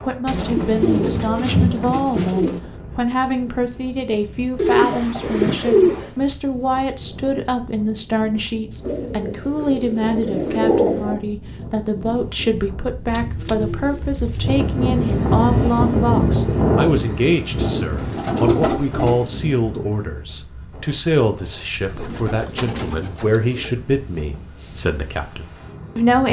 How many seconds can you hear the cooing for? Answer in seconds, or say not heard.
11 s.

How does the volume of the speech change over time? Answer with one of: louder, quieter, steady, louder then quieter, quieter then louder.
steady.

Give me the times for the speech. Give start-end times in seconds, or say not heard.
0.1-26.2.